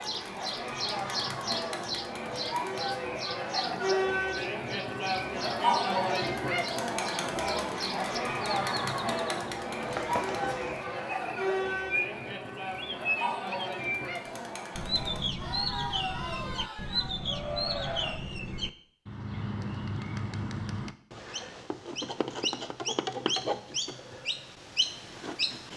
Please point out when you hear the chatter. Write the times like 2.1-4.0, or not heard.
0.0-18.1.